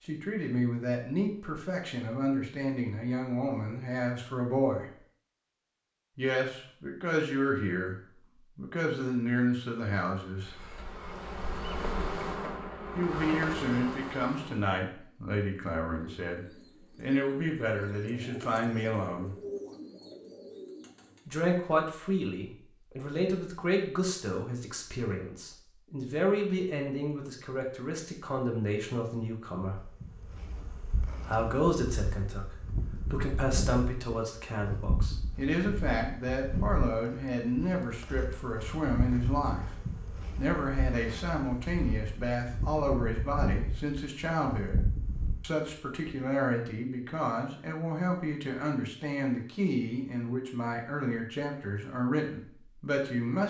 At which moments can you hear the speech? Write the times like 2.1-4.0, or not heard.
0.1-4.9, 6.2-8.0, 8.6-10.7, 12.9-19.4, 21.2-29.8, 31.2-53.4.